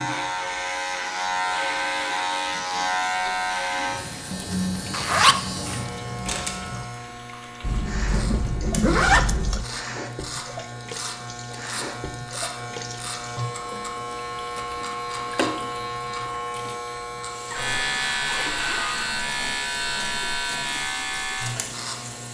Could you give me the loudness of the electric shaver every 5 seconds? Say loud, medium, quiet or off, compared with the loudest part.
loud, medium, medium, loud, loud.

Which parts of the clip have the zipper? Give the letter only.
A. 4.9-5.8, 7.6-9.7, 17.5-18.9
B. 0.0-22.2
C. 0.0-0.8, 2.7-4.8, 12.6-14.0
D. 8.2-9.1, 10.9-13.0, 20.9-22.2
A.